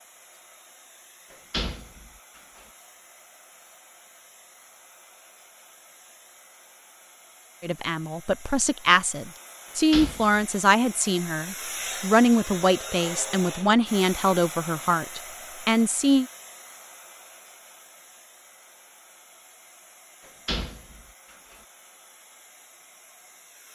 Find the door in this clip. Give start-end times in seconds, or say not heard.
1.3-2.4, 9.9-10.4, 20.2-21.6.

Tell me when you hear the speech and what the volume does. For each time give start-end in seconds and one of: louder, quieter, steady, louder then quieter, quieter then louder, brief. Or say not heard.
7.6-16.2 steady.